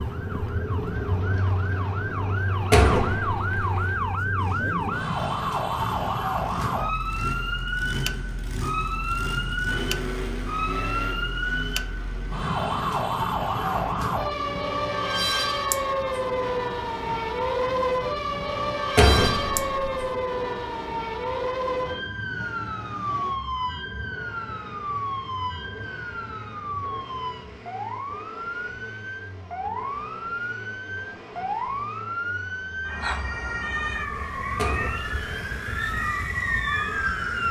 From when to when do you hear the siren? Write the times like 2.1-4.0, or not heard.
0.0-37.4.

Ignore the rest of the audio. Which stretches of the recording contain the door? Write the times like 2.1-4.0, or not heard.
2.7-3.6, 18.9-19.9, 34.5-35.2.